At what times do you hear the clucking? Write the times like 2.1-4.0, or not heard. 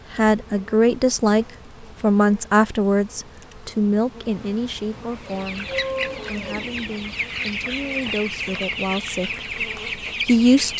5.1-10.7.